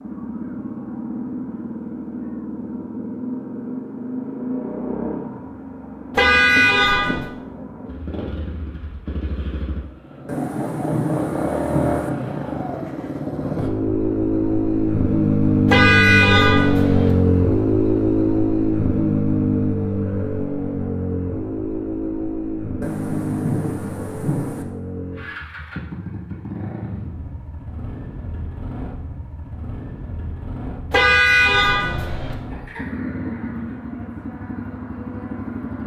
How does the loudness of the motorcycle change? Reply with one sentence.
The volume of the motorcycle goes up, then down.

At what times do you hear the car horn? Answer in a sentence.
The car horn can be heard from 6.1 to 7.3 s, from 15.7 to 17.1 s and from 30.9 to 32.4 s.